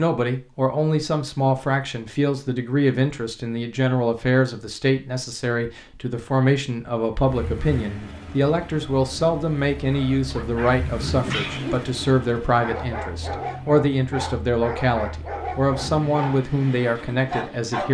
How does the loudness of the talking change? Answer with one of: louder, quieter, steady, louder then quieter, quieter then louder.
steady.